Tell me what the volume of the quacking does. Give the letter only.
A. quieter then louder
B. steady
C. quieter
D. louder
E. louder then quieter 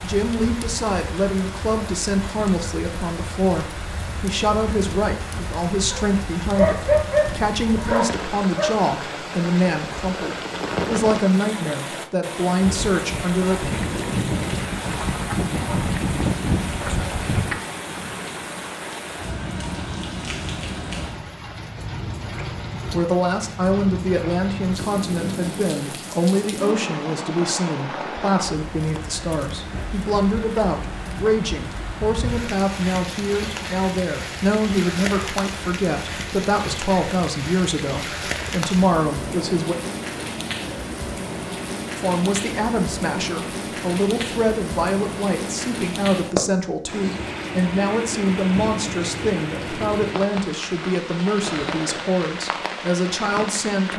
D.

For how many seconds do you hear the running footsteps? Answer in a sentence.
The running footsteps can't be heard in this clip.